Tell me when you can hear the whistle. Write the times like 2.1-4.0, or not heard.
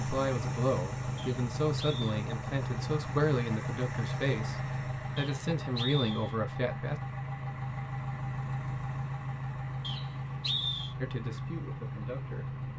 1.1-2.0, 5.2-6.3, 9.8-10.9.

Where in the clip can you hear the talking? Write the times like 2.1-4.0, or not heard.
0.0-7.0, 11.0-12.6.